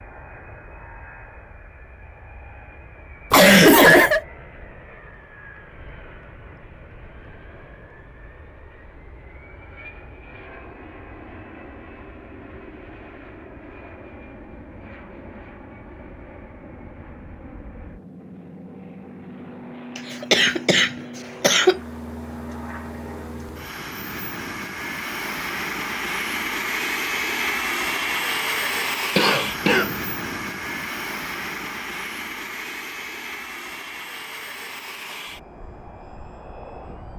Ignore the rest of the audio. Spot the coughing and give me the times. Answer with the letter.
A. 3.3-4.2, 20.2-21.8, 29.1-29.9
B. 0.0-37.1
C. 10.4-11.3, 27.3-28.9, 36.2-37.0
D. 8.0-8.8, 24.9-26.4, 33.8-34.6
A.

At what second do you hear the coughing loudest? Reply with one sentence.
The volume of the coughing peaks at 4 seconds.